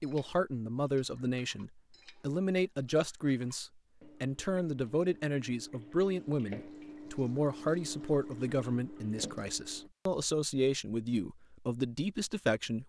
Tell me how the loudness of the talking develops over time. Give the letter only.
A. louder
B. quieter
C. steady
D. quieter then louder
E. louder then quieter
C.